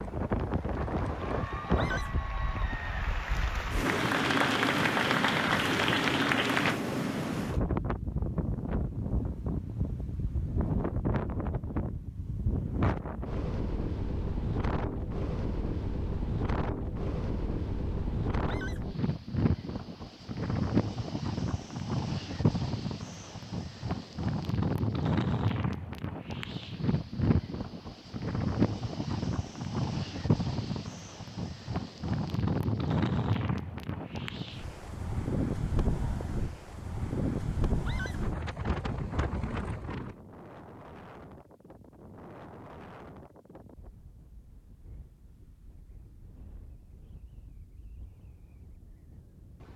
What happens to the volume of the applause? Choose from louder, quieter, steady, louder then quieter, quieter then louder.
louder.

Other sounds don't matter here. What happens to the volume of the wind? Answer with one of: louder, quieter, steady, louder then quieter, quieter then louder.
quieter.